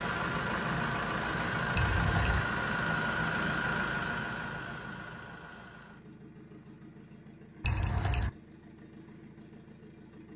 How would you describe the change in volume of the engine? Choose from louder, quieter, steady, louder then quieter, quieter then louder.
quieter.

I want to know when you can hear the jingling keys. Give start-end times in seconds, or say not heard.
1.8-2.4, 7.7-8.3.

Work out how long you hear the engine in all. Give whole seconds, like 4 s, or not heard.
10 s.